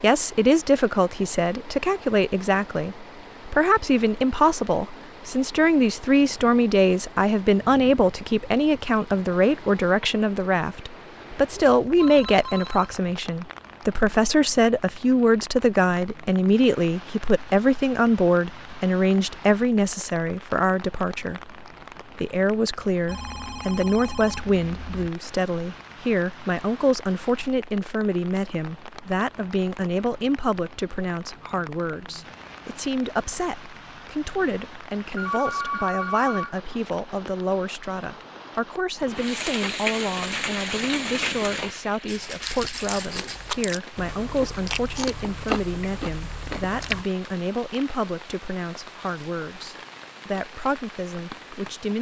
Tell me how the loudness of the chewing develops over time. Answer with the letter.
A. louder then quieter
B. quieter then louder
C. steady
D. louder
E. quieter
D.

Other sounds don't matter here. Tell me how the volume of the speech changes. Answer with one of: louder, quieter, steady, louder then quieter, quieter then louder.
quieter.